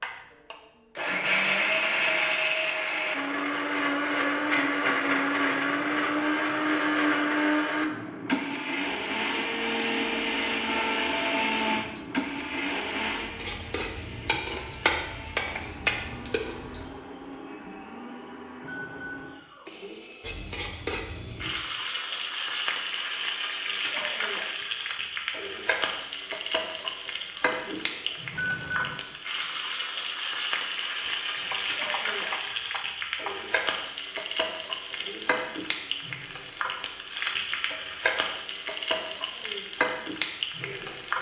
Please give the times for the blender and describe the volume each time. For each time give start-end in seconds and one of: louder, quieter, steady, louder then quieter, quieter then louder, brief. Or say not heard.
0.0-41.1 quieter.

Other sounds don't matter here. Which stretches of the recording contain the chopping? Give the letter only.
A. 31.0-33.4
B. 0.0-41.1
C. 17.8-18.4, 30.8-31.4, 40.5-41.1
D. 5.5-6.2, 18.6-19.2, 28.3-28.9
A.